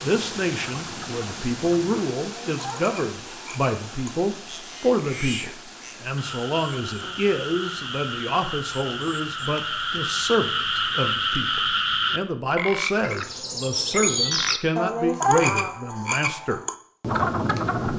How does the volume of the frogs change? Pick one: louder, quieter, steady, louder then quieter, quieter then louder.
louder.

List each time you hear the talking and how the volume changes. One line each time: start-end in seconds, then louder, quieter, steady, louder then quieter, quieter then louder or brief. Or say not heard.
0.0-16.6 steady.